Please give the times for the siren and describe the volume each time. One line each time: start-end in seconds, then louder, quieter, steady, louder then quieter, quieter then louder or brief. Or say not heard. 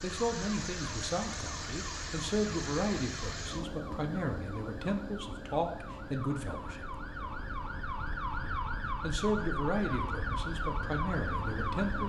0.0-12.0 louder.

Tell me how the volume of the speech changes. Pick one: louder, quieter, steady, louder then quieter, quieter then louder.
steady.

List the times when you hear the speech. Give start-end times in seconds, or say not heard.
0.0-7.0, 9.0-12.0.